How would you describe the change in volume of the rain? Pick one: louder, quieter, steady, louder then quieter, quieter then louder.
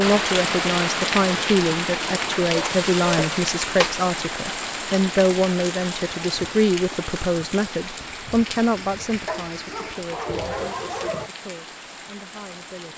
quieter.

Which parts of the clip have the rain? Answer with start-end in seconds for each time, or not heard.
0.0-12.9.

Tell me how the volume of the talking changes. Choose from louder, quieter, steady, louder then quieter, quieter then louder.
quieter.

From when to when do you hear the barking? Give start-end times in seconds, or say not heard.
2.5-4.0, 9.2-11.3.